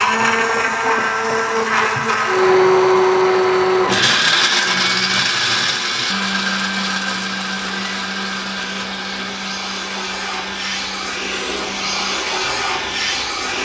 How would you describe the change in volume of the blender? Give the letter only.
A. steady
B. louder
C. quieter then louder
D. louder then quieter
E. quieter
E.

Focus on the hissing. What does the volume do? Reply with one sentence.
The volume of the hissing goes up.